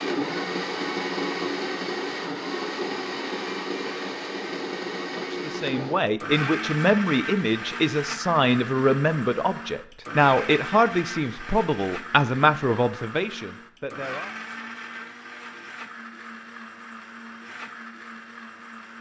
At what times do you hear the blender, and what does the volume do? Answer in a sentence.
The blender can be heard from 0.0 to 18.9 s, getting quieter.